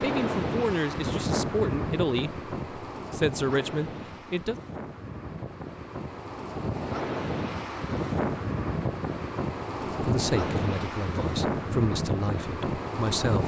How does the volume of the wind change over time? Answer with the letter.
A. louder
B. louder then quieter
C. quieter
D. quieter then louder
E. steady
D.